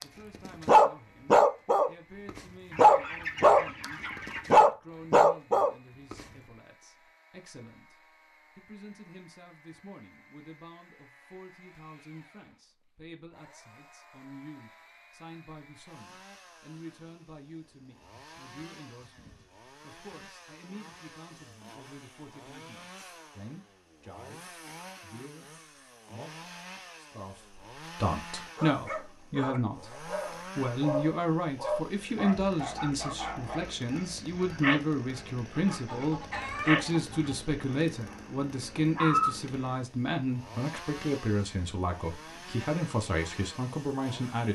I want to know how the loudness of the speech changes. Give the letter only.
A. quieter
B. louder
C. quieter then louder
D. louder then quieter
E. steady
B.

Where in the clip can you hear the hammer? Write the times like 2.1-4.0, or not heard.
not heard.